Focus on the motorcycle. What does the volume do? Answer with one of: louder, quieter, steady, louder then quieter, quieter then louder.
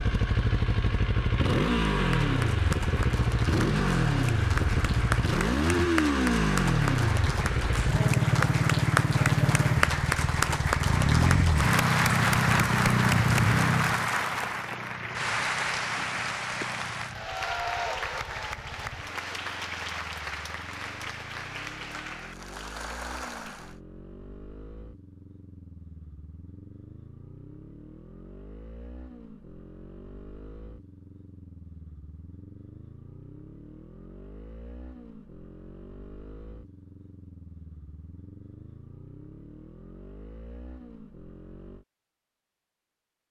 quieter.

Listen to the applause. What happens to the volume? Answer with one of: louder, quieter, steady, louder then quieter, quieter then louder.
louder then quieter.